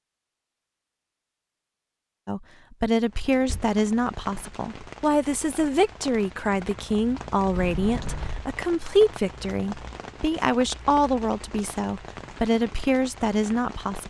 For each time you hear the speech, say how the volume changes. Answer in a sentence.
The speech can be heard from 2.2 to 14.0 s, at a steady volume.